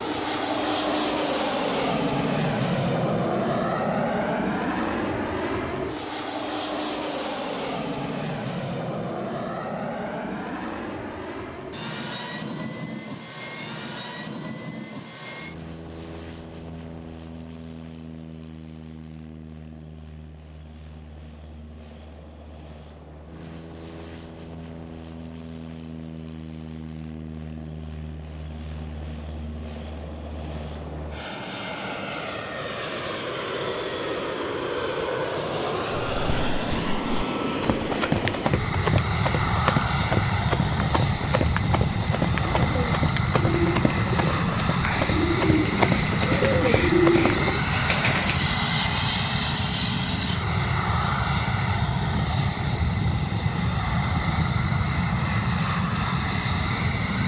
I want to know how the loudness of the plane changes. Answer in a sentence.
The volume of the plane goes down, then up.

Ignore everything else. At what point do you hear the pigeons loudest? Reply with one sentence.
The volume of the pigeons peaks at 47 seconds.